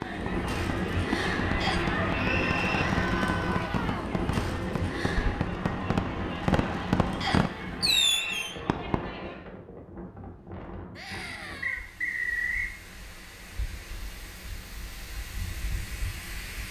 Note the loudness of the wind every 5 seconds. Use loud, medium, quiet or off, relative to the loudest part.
loud, medium, quiet, medium.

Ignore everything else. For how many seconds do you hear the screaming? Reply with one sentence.
You can hear the screaming for 3 seconds altogether.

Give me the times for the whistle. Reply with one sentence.
The whistle can be heard from 1.6 to 2.9 s, from 7.2 to 8.4 s and from 11.6 to 12.8 s.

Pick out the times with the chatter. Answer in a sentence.
The chatter can be heard from 0.0 to 9.4 s.